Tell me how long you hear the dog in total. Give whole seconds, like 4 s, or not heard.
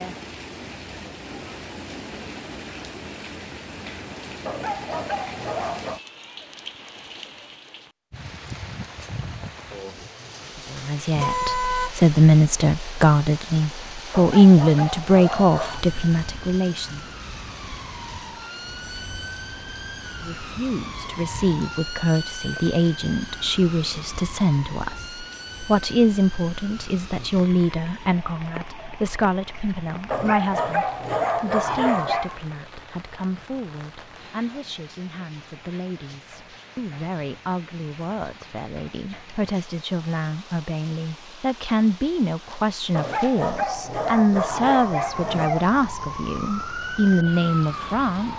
8 s.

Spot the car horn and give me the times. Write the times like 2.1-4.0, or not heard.
11.2-11.9.